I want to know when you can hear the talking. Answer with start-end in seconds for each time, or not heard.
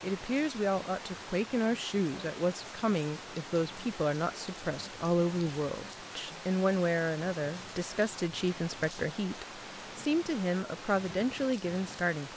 0.0-12.3.